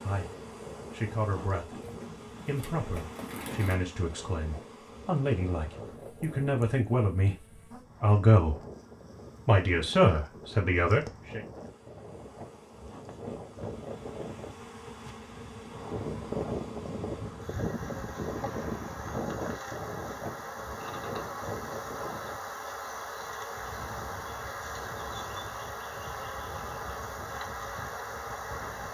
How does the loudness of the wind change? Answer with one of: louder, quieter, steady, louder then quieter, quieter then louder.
louder then quieter.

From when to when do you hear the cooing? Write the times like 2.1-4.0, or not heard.
1.8-3.8.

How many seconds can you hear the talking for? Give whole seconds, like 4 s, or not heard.
10 s.